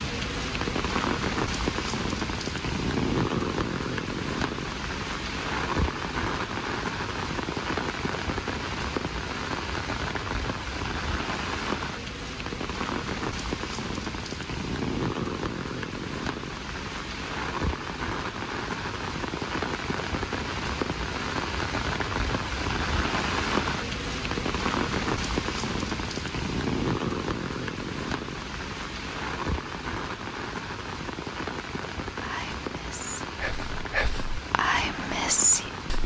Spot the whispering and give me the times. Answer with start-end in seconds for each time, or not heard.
32.1-36.0.